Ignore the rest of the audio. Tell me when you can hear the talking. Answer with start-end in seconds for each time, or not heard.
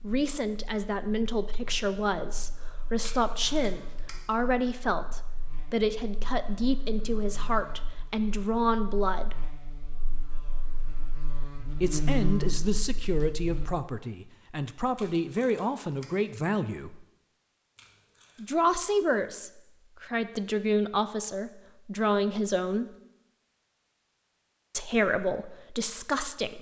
0.0-9.4, 11.8-17.1, 18.4-22.9, 24.7-26.5.